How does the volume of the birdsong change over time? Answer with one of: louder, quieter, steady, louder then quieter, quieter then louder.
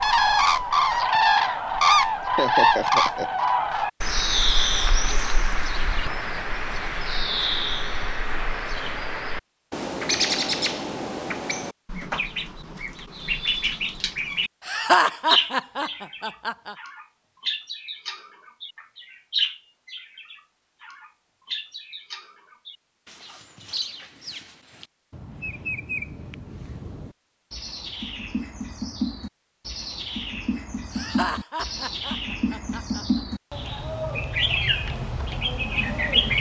quieter then louder.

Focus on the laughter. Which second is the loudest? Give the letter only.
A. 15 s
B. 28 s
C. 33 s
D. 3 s
A.